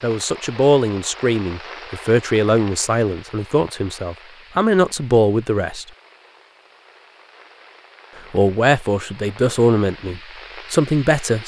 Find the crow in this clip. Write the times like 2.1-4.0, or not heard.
not heard.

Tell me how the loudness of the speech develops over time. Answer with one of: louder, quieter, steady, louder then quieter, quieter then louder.
steady.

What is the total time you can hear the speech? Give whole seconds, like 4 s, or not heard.
9 s.